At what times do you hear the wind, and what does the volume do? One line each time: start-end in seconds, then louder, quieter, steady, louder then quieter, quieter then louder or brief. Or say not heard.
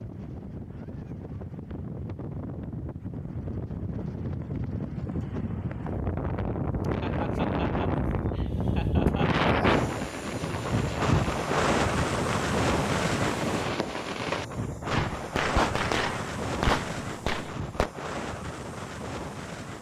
0.0-19.7 louder then quieter.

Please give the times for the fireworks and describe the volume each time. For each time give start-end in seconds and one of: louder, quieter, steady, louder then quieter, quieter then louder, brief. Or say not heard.
9.7-17.9 louder.